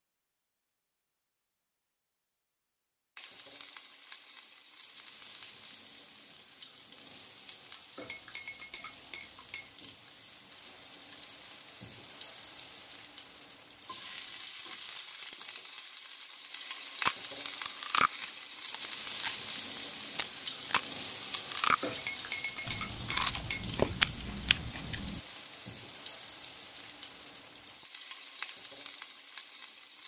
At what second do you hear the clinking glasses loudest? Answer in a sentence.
The loudest moment of the clinking glasses is at 22 seconds.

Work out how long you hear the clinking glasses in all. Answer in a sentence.
The clinking glasses can be heard for 3 seconds in total.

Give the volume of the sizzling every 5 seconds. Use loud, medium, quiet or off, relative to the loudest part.
medium, medium, medium, loud, loud, medium.